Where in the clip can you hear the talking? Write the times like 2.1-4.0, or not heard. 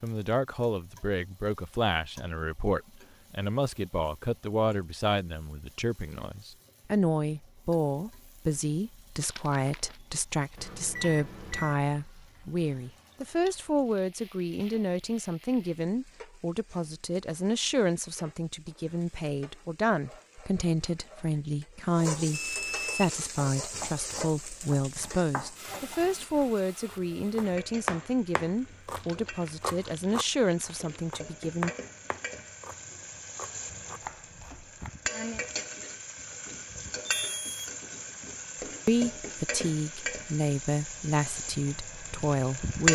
0.0-31.7, 38.9-42.8.